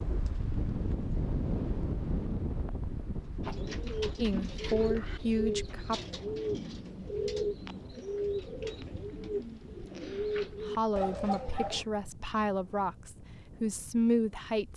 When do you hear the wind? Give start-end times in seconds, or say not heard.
0.0-14.7.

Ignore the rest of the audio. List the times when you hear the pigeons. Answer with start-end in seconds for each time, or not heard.
3.4-11.8.